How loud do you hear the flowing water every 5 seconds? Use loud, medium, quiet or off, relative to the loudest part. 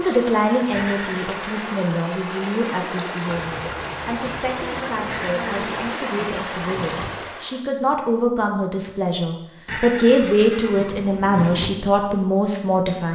loud, loud, off.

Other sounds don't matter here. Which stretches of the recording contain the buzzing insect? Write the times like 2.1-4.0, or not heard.
3.2-6.0.